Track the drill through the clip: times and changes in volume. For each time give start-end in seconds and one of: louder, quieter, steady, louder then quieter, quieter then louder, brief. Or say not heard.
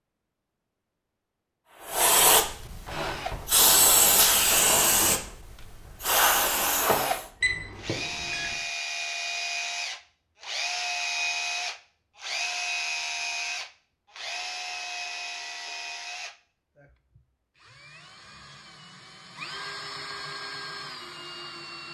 2.9-21.8 louder then quieter.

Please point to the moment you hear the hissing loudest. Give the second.
4 s.